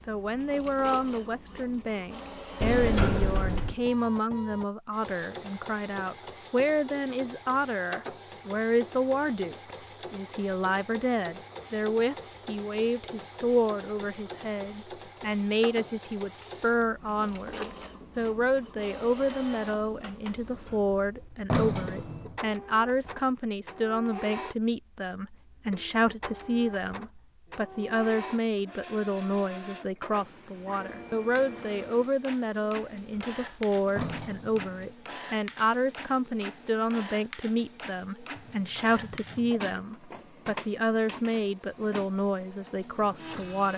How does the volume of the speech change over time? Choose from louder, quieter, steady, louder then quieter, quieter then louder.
steady.